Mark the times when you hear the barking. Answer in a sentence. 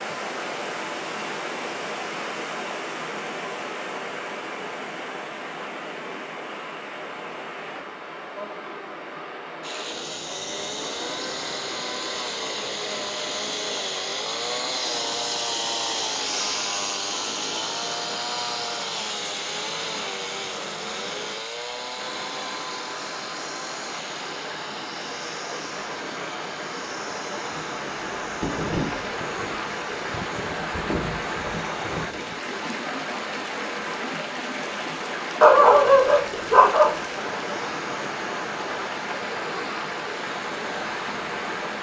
You can hear the barking from 35.4 to 37.0 s.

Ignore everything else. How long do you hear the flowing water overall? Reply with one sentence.
The flowing water can be heard for 42 seconds in total.